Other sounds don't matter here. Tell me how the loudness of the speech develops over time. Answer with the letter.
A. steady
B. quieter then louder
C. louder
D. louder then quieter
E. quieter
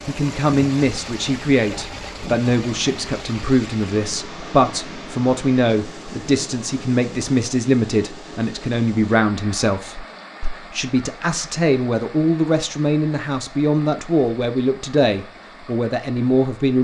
A.